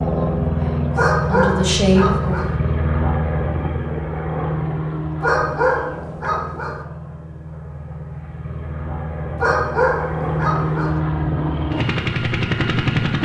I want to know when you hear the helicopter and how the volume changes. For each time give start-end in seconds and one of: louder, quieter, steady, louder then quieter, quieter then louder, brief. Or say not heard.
0.0-13.2 quieter then louder.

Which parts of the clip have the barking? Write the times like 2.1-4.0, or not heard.
0.9-2.5, 5.2-6.8, 9.3-11.0.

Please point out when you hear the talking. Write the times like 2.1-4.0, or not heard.
0.0-2.6.